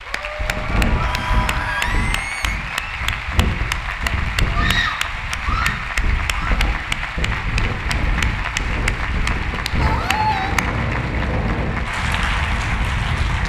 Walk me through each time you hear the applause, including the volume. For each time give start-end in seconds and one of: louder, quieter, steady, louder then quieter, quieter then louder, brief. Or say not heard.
0.0-13.4 steady.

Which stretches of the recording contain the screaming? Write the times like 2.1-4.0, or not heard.
0.9-2.6, 4.5-6.7, 9.8-10.6.